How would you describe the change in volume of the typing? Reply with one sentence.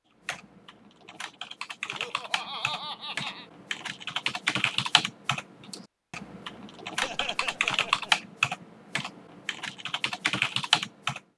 The volume of the typing goes up.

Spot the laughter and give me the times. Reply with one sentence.
You can hear the laughter from 1.9 to 3.5 s and from 7.0 to 8.2 s.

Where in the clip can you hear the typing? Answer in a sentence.
You can hear the typing from 0.2 to 11.2 s.